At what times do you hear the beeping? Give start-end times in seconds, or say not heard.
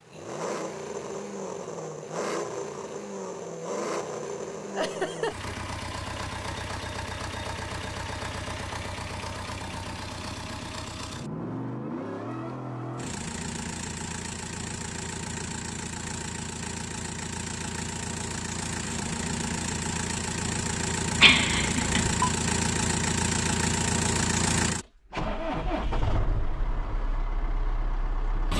21.2-22.3.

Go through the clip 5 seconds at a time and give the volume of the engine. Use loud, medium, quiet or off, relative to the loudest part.
medium, medium, medium, medium, loud, medium.